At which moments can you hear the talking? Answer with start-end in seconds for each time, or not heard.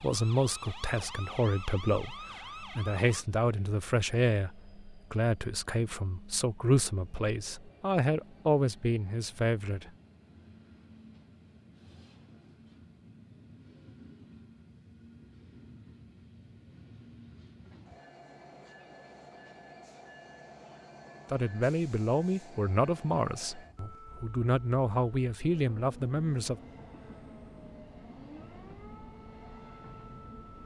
0.0-9.9, 21.3-26.6.